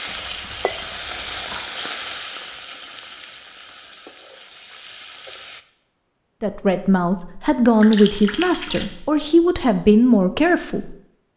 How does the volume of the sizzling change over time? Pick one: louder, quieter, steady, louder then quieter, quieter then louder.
quieter.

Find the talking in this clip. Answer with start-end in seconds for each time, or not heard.
6.4-10.9.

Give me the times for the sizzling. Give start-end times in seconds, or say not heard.
0.0-5.7.